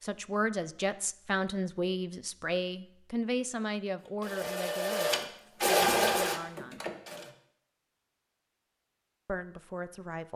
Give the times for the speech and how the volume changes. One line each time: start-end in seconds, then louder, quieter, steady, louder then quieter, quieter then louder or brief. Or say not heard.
0.0-6.9 quieter
9.2-10.3 brief.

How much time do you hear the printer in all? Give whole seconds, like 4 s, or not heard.
3 s.